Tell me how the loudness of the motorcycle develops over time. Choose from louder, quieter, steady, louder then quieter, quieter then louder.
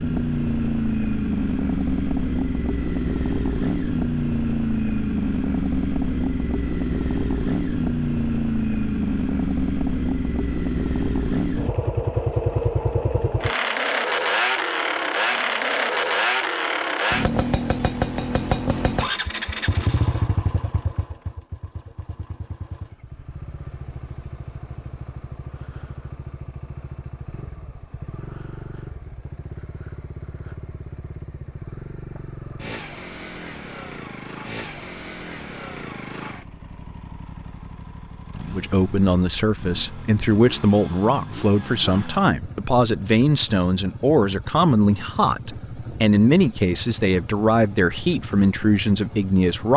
quieter.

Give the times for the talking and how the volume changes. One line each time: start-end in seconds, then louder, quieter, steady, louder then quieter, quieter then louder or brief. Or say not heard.
38.5-49.7 steady.